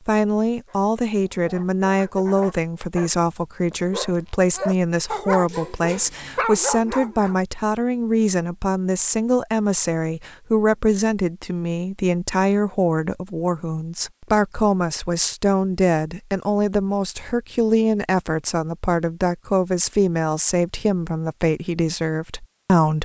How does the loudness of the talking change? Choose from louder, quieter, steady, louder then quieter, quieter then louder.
steady.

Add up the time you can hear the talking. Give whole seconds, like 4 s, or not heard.
23 s.